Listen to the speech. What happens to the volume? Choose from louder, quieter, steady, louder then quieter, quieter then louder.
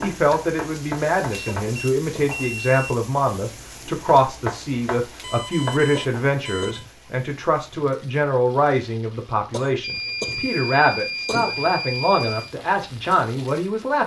steady.